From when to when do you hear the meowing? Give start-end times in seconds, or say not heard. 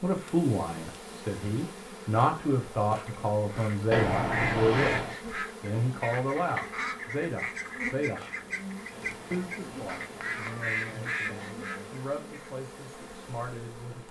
3.9-5.2, 8.9-11.2.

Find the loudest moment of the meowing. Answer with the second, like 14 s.
4 s.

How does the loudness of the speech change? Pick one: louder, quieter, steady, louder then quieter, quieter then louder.
quieter.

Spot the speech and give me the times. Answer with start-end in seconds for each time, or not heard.
0.0-8.4, 9.3-14.0.